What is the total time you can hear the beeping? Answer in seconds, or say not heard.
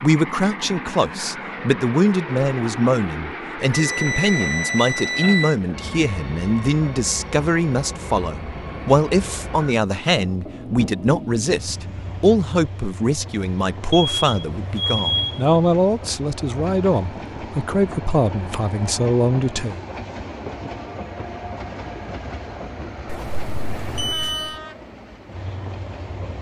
5 s.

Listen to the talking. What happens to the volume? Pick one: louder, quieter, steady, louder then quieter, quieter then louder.
steady.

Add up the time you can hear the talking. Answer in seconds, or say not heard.
20 s.